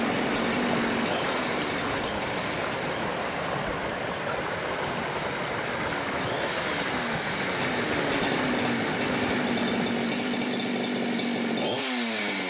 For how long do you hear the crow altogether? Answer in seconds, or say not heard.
not heard.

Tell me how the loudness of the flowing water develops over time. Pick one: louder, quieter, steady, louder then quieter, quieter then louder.
steady.